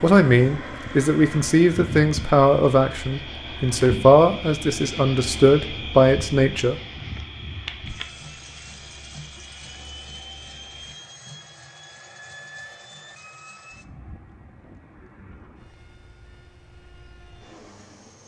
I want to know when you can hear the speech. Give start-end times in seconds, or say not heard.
0.0-6.8.